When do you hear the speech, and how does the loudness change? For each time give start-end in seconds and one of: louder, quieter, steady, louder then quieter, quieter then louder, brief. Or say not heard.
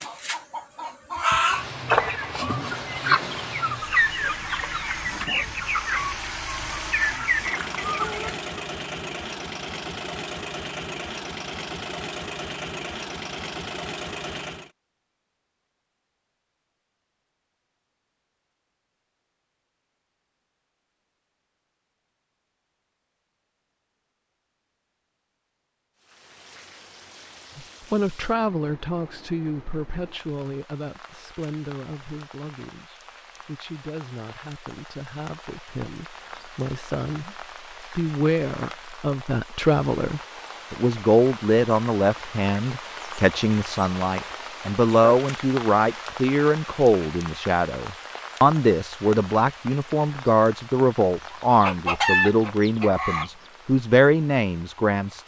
27.6-55.2 louder.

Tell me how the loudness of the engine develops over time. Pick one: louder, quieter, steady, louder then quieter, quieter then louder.
steady.